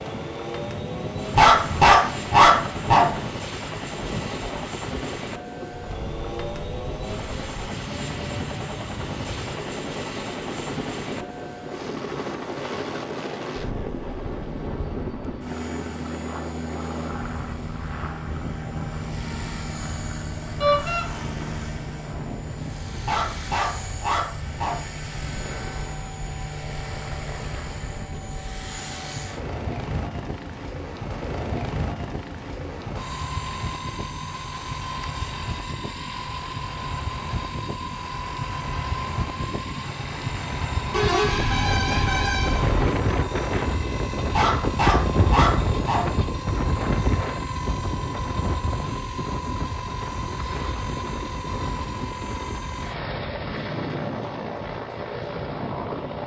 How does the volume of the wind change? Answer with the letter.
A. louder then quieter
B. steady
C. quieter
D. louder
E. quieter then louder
D.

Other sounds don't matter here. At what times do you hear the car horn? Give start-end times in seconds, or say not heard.
20.6-21.1, 40.9-43.0.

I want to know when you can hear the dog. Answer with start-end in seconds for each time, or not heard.
1.4-3.2, 23.1-24.9, 44.3-46.1.